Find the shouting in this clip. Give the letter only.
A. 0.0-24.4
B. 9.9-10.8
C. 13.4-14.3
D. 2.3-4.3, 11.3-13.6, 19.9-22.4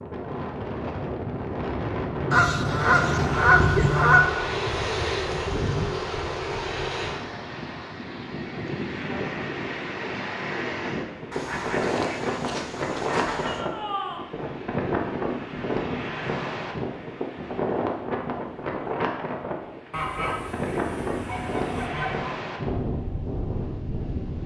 C.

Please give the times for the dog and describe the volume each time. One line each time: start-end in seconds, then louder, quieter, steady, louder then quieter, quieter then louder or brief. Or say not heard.
not heard.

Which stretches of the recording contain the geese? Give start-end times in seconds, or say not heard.
2.3-4.3, 11.3-13.6, 19.9-22.4.